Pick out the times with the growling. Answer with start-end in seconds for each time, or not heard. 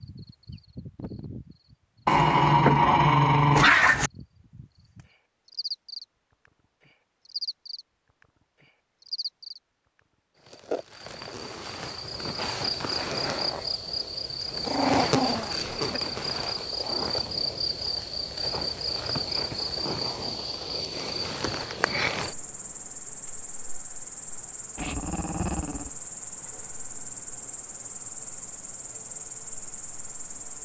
2.0-4.1, 14.7-16.0, 24.8-25.9.